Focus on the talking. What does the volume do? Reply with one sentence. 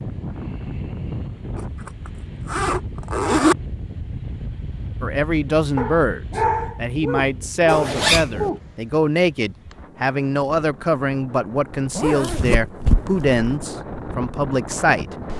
The volume of the talking stays about the same.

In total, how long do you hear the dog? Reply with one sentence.
The dog can be heard for 3 seconds in total.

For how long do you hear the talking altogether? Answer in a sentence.
The talking can be heard for 10 seconds in total.